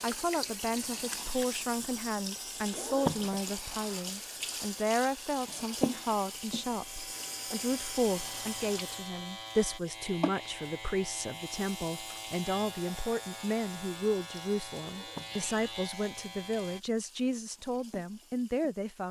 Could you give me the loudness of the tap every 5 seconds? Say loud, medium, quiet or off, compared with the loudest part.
loud, loud, medium, quiet.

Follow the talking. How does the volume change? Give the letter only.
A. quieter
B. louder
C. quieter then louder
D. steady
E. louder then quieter
D.